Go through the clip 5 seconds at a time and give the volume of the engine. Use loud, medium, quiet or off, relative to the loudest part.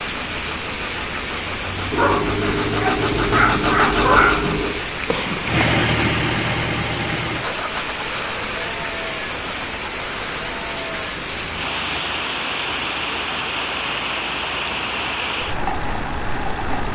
loud, loud, medium, medium.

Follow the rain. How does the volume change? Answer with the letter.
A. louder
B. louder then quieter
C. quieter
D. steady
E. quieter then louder
D.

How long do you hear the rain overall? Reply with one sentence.
You can hear the rain for 17 seconds altogether.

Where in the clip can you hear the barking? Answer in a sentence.
The barking can be heard from 1.9 to 4.8 s.